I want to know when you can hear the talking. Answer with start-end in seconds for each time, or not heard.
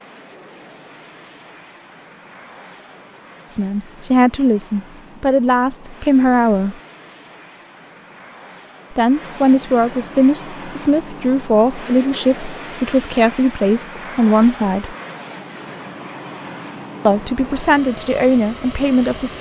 3.5-6.8, 8.9-14.9, 17.1-19.3.